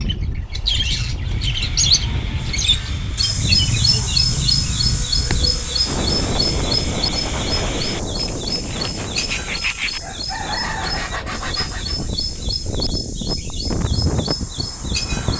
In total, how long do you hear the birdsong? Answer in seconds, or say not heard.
15 s.